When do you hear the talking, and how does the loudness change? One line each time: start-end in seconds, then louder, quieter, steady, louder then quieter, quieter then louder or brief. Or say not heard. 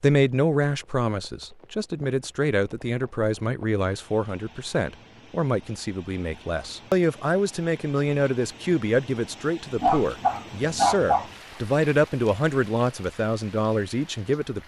0.0-14.6 steady.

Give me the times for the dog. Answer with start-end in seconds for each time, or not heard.
9.8-11.3.